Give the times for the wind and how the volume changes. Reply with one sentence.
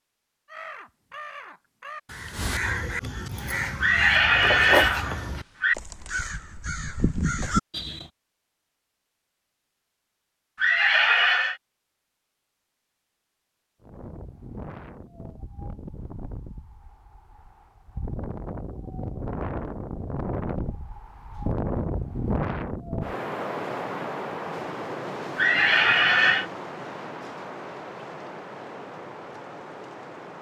You can hear the wind from 13.8 to 30.3 s, getting louder then quieter.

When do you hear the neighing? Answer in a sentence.
You can hear the neighing from 3.8 to 5.8 s, from 10.6 to 11.6 s and from 25.4 to 26.4 s.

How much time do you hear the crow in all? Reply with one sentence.
You can hear the crow for 8 seconds altogether.